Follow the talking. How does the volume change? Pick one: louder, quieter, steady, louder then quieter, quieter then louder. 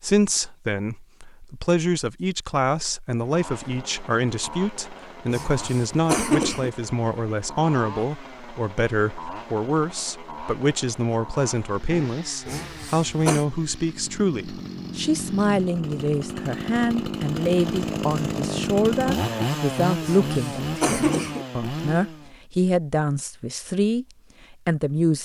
steady.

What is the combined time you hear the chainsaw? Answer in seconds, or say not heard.
19 s.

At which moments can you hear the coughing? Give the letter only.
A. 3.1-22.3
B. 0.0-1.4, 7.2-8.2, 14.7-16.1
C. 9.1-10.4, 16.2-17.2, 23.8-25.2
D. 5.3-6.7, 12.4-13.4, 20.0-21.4
D.